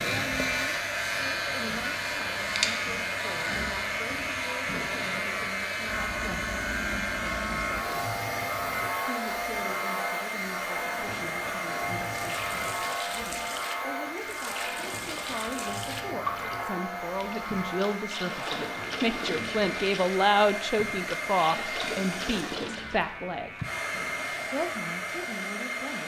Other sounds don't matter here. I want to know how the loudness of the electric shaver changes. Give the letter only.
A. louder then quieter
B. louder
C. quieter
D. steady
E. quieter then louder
C.